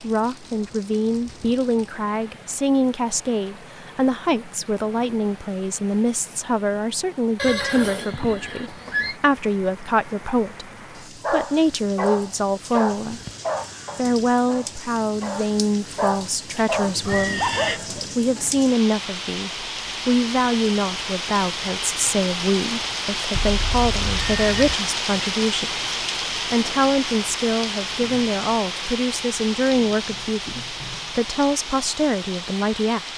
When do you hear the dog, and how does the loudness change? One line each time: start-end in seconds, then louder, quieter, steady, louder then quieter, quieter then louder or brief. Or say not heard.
11.2-18.1 quieter then louder.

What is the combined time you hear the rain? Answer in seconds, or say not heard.
33 s.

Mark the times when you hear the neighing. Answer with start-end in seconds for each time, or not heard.
7.3-9.2, 17.0-17.8, 23.3-24.8.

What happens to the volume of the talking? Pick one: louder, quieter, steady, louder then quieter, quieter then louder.
steady.